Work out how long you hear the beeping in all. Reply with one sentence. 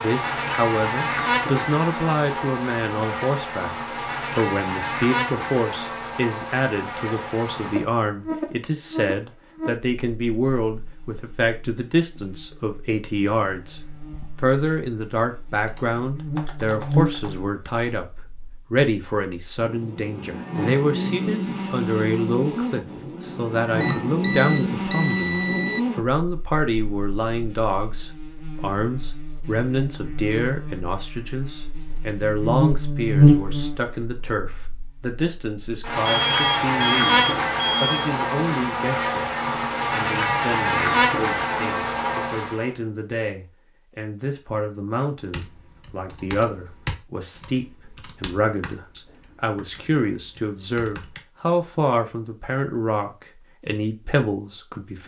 The beeping can be heard for 4 seconds in total.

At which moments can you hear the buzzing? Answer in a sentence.
The buzzing can be heard from 0.0 to 42.7 s.